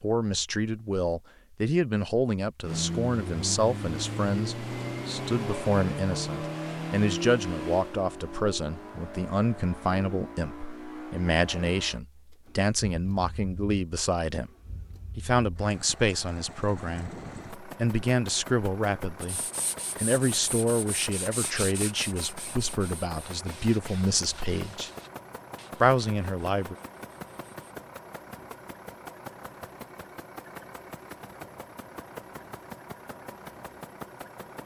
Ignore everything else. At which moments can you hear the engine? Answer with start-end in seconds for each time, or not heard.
2.6-34.6.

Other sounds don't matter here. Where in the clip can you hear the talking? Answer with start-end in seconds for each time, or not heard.
0.0-14.5, 15.2-19.4, 20.0-24.9, 25.8-26.8.